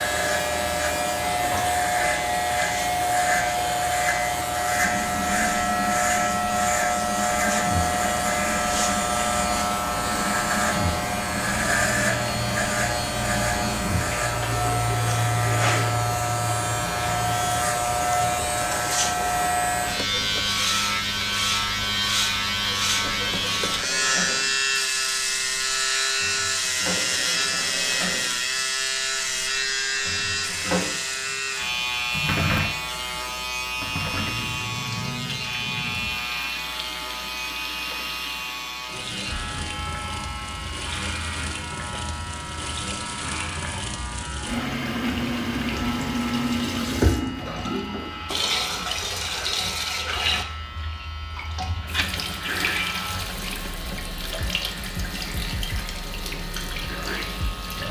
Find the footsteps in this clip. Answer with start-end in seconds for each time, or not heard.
not heard.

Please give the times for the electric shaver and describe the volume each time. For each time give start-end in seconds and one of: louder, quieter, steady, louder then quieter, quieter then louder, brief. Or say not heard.
0.0-57.8 quieter.